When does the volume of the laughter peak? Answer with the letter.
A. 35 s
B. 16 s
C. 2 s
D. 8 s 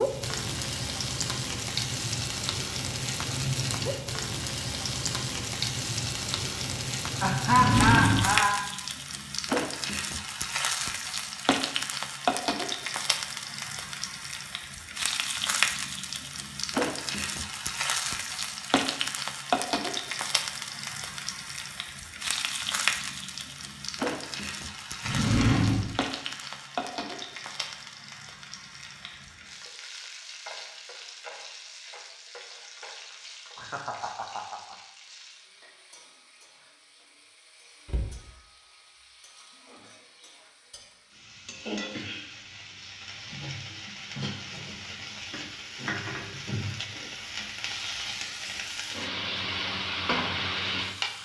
D.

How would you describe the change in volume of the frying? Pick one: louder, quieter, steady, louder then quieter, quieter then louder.
quieter then louder.